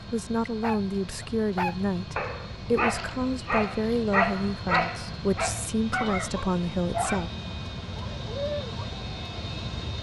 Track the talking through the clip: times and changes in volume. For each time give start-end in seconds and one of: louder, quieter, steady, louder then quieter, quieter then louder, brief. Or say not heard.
0.0-7.3 steady.